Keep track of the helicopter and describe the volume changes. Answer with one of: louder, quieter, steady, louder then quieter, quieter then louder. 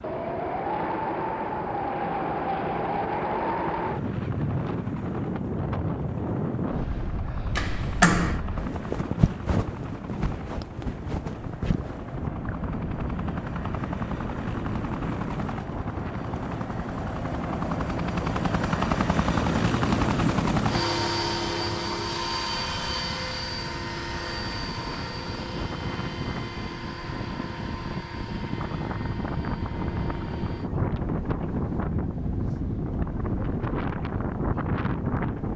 louder then quieter.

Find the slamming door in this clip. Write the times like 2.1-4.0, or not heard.
7.5-8.4.